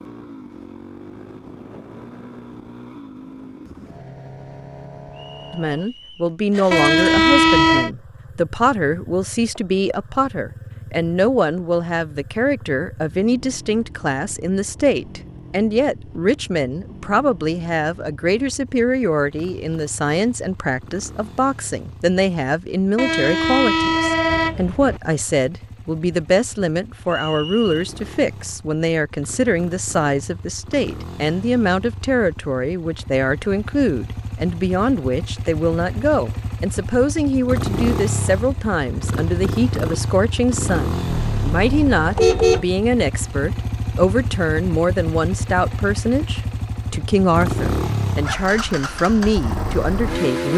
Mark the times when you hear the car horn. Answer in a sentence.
The car horn can be heard from 6.7 to 7.9 s, from 22.9 to 25.0 s and from 41.0 to 42.6 s.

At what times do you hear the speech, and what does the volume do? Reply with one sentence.
The speech can be heard from 5.5 to 50.5 s, at a steady volume.